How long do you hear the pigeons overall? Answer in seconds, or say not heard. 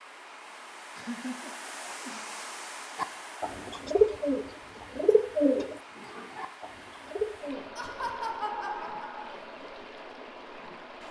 5 s.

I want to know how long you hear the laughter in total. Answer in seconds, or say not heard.
3 s.